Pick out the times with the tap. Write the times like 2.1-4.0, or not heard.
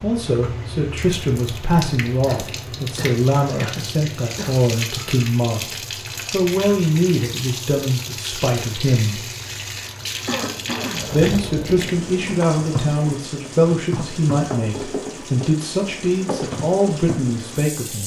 0.0-18.0.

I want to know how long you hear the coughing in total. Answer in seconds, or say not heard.
3 s.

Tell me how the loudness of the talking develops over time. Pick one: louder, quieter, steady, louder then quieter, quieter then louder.
steady.